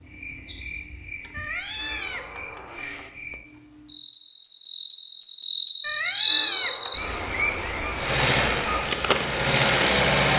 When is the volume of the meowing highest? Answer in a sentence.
The loudest moment of the meowing is at 6 seconds.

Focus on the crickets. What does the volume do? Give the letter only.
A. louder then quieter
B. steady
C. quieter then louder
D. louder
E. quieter
D.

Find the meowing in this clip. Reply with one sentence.
You can hear the meowing from 1.3 to 3.1 s and from 5.8 to 7.0 s.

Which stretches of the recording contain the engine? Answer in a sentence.
The engine can be heard from 8.0 to 10.3 s.